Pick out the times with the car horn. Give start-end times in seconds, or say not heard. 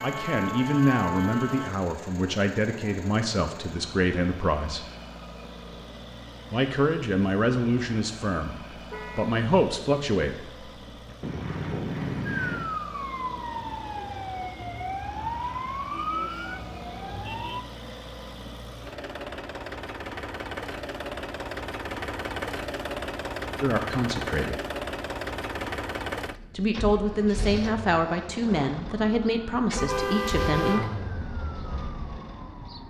8.9-9.3, 11.2-12.7, 29.8-30.9.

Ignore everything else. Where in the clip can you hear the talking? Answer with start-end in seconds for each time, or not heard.
0.0-4.8, 6.5-10.7, 23.6-24.6, 26.6-30.9.